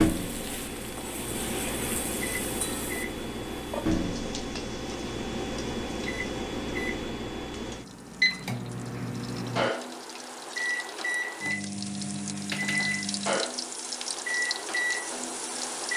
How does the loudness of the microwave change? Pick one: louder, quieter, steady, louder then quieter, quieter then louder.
steady.